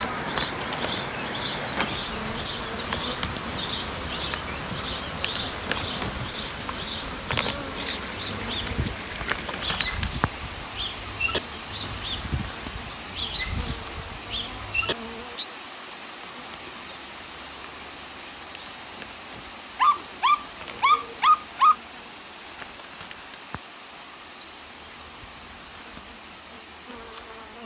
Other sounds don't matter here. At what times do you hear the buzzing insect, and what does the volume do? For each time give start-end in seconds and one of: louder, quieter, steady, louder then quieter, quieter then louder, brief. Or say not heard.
0.0-27.6 quieter.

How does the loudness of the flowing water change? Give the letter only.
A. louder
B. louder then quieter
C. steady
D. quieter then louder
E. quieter
E.